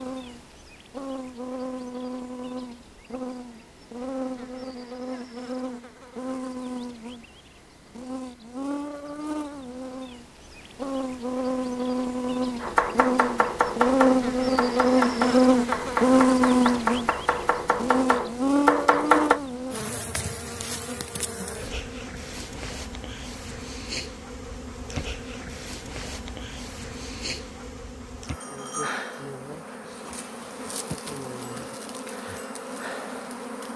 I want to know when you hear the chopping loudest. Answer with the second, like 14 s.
19 s.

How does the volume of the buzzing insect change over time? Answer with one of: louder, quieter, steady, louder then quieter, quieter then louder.
louder then quieter.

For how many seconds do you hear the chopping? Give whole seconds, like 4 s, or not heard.
7 s.